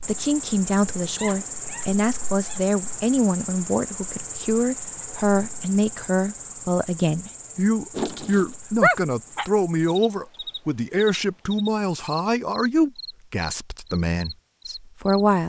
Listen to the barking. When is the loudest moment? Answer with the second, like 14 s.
9 s.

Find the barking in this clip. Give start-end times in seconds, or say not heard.
1.1-2.6, 8.0-9.4.